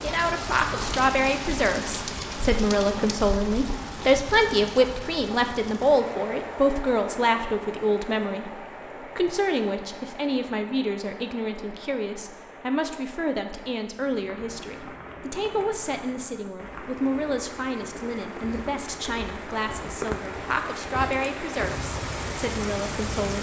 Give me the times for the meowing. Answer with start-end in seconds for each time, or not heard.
not heard.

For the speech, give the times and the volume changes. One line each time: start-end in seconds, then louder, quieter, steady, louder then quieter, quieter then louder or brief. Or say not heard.
0.0-23.3 quieter.